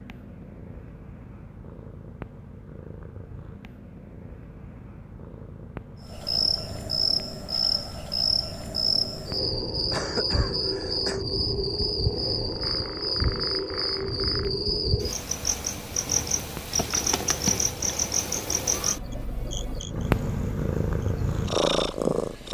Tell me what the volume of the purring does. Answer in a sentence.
The volume of the purring goes up.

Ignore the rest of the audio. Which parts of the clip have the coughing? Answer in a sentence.
You can hear the coughing from 9.9 to 11.2 s.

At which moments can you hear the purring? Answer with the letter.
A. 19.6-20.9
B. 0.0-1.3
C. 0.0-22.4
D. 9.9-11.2
C.